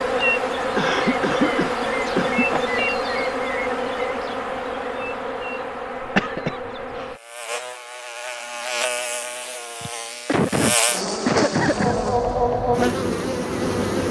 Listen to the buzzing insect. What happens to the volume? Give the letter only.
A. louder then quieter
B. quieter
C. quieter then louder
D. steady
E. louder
C.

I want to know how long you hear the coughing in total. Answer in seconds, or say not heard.
5 s.